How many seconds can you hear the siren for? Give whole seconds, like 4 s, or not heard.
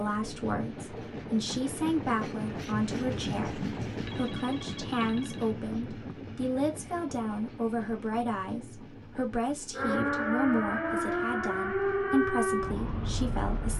4 s.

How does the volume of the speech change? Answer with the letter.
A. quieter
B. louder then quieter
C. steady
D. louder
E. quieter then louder
C.